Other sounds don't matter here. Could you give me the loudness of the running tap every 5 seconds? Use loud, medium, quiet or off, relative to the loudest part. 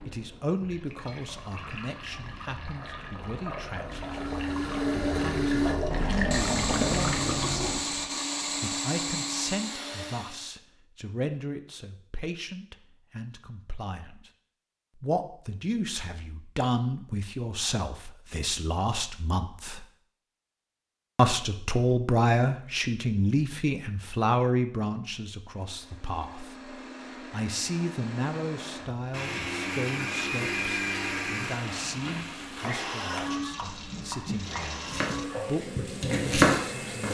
medium, loud, off, off, off, off, medium, medium.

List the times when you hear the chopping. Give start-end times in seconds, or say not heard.
31.9-37.0.